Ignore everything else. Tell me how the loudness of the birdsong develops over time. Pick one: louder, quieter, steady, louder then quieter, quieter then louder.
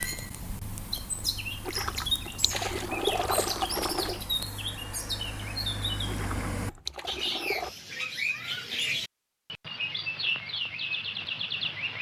steady.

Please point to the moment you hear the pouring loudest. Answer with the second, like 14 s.
3 s.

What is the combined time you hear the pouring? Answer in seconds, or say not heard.
4 s.